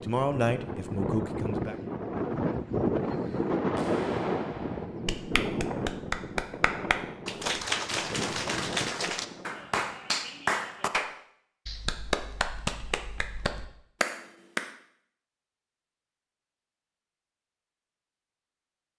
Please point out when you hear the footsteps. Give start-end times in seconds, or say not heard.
not heard.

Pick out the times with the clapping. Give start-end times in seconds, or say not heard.
3.8-14.7.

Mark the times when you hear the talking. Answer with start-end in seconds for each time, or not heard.
0.0-1.8.